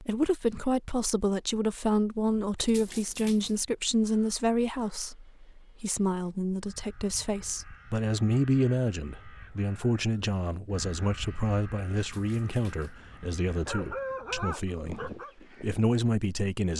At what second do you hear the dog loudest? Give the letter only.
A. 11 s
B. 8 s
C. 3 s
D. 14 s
D.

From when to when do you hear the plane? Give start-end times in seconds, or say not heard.
not heard.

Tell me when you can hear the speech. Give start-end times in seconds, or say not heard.
0.0-16.7.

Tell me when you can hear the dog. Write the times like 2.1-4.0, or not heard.
12.8-15.3.